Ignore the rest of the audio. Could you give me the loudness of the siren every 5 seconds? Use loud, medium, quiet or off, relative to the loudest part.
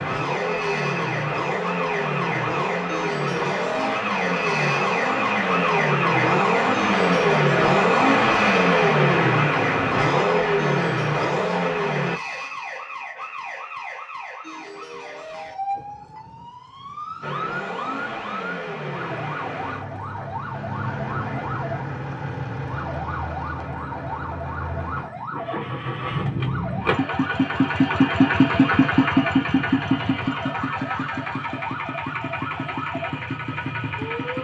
loud, loud, medium, medium, medium, medium, medium.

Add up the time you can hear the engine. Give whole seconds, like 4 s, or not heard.
29 s.